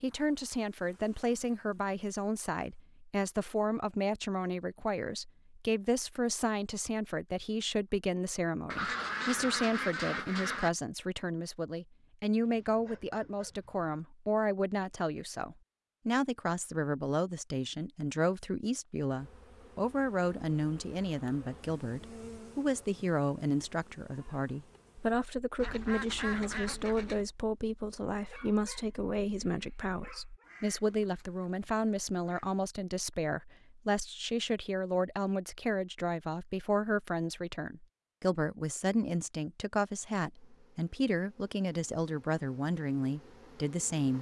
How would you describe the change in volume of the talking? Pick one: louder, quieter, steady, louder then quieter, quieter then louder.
steady.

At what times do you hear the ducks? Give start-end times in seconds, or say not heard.
8.7-10.7, 25.6-27.2, 30.4-32.5.